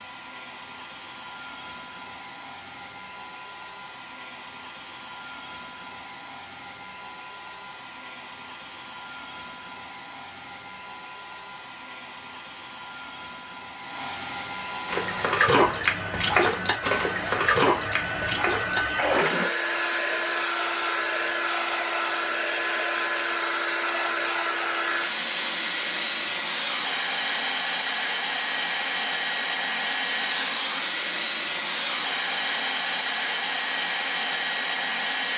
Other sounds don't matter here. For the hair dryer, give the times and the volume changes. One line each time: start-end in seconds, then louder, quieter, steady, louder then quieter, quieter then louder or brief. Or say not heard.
0.0-35.3 louder.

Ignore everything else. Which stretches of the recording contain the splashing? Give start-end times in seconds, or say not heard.
14.8-19.5.